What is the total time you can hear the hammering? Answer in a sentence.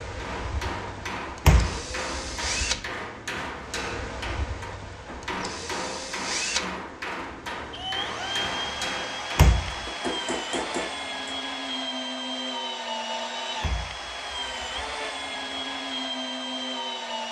You can hear the hammering for 11 seconds altogether.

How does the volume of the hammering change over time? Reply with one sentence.
The volume of the hammering stays about the same.